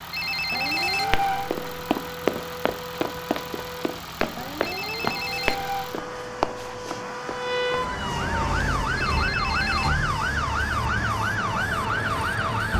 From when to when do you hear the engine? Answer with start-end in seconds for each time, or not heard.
0.0-12.7.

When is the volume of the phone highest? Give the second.
1 s.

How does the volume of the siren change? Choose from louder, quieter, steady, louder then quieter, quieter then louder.
louder.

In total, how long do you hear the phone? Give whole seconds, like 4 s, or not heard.
4 s.